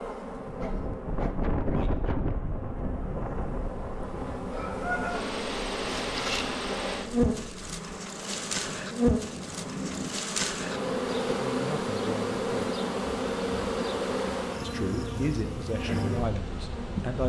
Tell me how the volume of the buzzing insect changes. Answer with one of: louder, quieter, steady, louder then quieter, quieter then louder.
louder.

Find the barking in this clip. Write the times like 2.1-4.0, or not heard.
0.6-2.1.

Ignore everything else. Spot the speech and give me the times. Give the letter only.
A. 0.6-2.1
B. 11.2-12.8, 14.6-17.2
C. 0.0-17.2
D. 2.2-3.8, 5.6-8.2
B.